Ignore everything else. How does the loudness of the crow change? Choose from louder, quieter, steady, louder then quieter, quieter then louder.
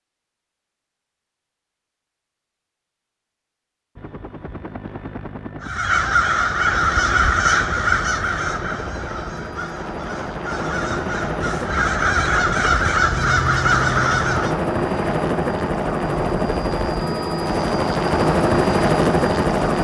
quieter then louder.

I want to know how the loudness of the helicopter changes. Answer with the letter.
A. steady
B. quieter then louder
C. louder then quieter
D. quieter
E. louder
E.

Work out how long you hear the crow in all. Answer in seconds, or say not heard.
9 s.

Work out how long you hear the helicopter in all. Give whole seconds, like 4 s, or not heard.
16 s.